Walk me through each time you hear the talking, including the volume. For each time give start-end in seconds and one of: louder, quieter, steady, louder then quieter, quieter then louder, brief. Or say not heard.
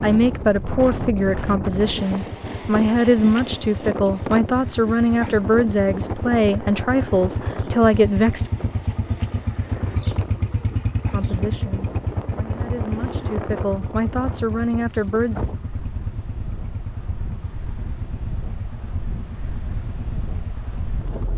0.0-8.4 steady
11.1-15.4 louder.